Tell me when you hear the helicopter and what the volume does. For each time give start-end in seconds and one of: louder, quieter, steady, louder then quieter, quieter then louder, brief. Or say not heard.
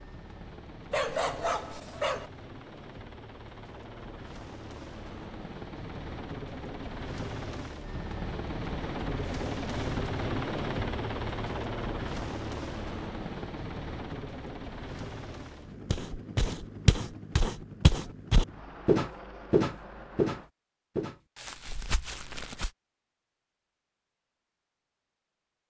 0.0-20.5 louder then quieter.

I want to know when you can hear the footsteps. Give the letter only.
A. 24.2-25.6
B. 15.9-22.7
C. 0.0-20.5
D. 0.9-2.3
B.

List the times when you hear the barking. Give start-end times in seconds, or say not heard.
0.9-2.3.